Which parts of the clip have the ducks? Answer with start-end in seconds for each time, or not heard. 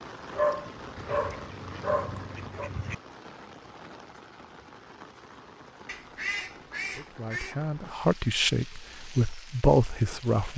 0.9-3.0, 5.8-7.5.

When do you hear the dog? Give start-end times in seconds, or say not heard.
0.3-2.7.